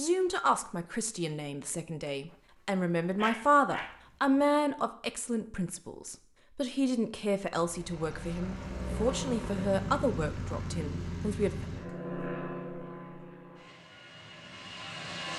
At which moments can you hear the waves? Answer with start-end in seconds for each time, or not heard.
not heard.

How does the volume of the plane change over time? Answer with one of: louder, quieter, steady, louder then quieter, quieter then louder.
quieter.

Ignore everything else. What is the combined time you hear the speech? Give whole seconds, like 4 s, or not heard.
12 s.